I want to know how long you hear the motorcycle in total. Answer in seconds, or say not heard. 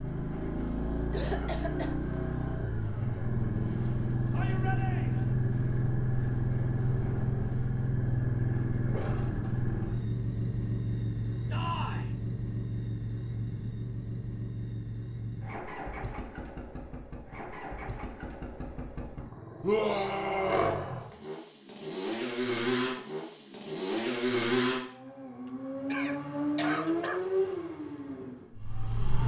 29 s.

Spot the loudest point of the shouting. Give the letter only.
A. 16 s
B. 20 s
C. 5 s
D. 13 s
B.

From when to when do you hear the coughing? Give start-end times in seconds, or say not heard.
1.1-1.9, 25.9-27.2.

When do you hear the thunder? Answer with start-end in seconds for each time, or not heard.
not heard.